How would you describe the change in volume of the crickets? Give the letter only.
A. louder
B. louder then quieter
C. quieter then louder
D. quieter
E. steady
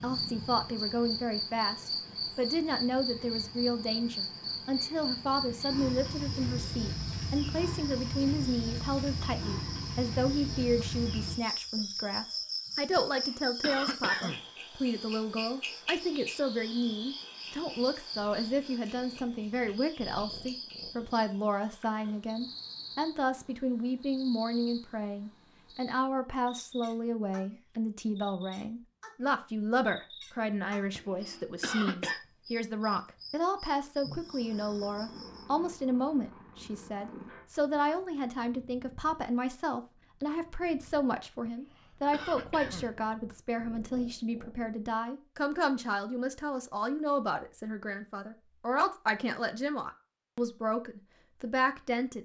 D.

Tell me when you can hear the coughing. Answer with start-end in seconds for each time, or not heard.
12.9-14.4, 30.9-32.2, 41.5-42.9.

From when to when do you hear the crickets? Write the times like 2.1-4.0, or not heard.
0.0-35.5.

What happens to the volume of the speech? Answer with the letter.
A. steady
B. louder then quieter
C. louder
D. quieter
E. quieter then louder
A.